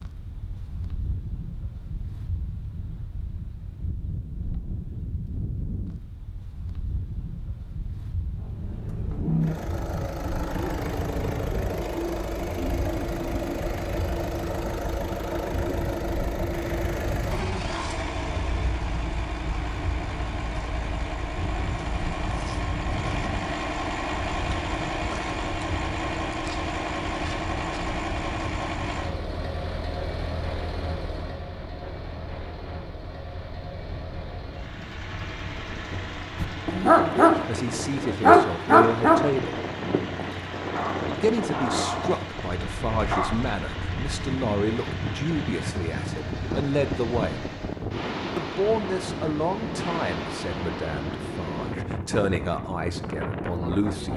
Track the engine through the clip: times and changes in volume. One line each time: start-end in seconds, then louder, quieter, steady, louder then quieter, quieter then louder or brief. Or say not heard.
8.3-48.0 quieter.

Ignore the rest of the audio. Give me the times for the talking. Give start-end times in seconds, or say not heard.
37.4-39.6, 41.1-47.5, 48.4-54.1.